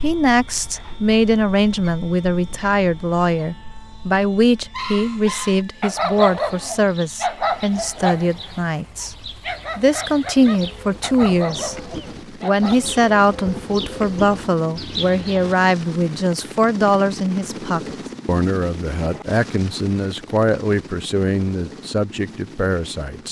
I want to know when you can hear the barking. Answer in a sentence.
You can hear the barking from 4.7 to 12.8 s.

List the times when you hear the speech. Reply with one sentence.
The speech can be heard from 0.0 to 9.2 s and from 9.8 to 23.2 s.